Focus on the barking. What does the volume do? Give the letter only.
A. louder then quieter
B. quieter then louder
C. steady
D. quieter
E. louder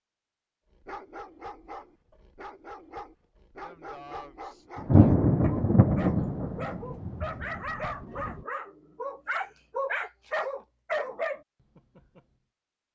E.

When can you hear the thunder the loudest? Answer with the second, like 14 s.
5 s.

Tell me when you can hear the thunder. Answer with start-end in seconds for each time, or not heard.
4.8-8.4.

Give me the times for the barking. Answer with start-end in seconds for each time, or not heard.
0.7-12.2.